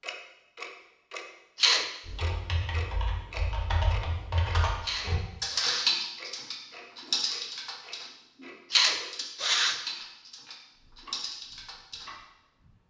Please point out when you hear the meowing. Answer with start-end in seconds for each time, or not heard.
not heard.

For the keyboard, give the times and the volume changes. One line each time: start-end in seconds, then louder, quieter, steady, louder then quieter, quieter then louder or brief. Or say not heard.
2.0-12.1 louder then quieter.